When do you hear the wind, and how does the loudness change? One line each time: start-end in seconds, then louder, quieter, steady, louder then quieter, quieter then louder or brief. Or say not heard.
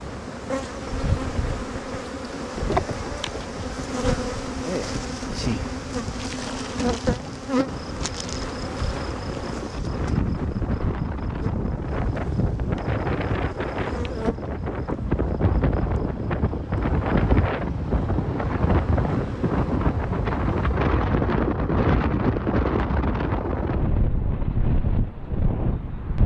0.0-26.2 louder.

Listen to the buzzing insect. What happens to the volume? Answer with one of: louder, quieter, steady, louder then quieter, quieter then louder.
quieter.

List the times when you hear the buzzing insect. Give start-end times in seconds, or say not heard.
0.0-20.8.